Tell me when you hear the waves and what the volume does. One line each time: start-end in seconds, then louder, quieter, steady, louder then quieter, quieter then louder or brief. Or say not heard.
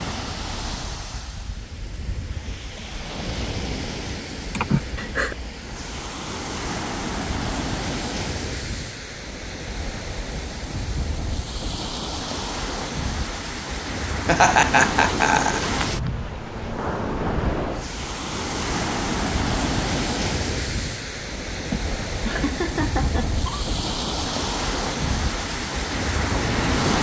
0.0-26.9 louder.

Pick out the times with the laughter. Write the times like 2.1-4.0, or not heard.
4.5-5.3, 14.2-15.8, 21.7-23.7.